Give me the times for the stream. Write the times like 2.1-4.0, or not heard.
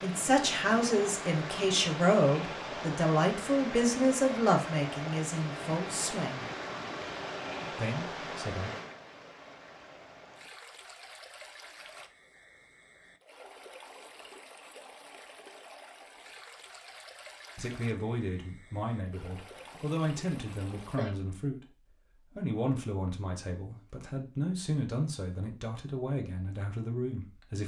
0.0-21.1.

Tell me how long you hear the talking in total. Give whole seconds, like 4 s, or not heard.
17 s.